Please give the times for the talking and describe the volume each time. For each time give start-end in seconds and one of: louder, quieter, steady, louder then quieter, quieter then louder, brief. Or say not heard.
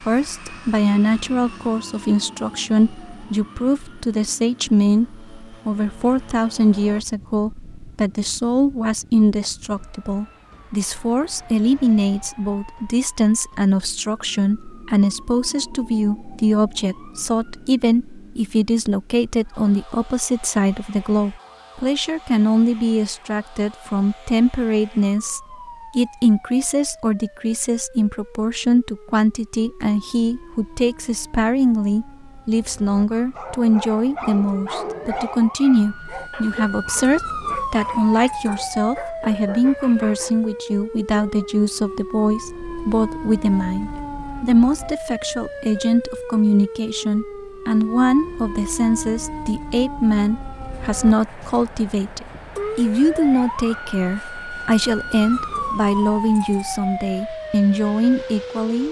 0.0-58.8 steady.